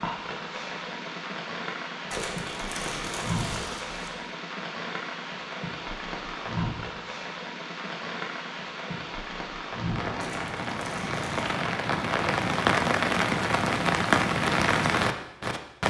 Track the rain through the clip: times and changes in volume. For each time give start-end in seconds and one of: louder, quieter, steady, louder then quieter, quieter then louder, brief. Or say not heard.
0.0-15.8 louder.